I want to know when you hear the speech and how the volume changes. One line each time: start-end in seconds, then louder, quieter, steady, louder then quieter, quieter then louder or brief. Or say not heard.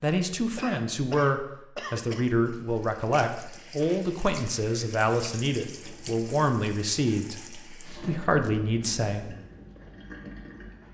0.0-9.3 steady.